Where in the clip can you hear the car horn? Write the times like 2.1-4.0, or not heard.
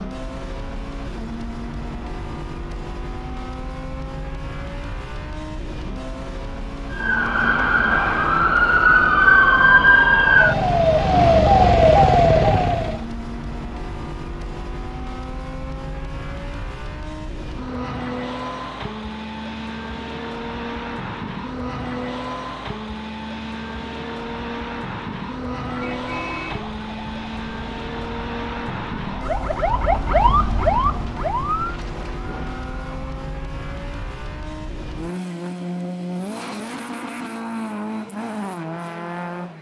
25.8-26.6.